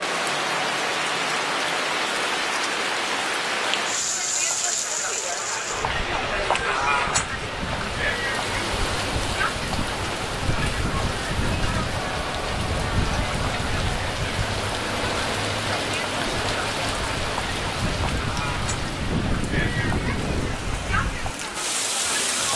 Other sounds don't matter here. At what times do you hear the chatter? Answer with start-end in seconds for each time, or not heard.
0.0-22.5.